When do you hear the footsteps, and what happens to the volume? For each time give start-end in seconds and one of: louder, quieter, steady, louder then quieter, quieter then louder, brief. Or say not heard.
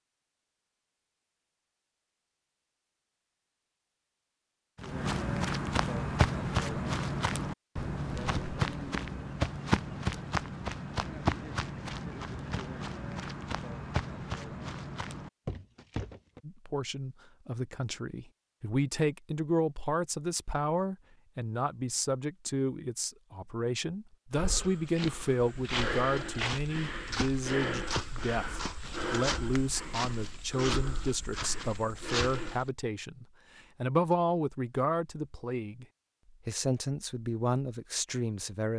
4.8-16.4 quieter
24.3-32.7 steady.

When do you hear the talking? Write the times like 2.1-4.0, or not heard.
16.4-35.9, 36.5-38.7.